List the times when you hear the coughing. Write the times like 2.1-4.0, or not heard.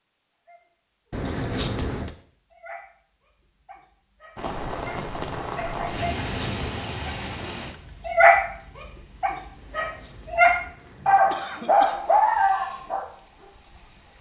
1.1-2.1, 5.9-6.8, 9.6-12.0.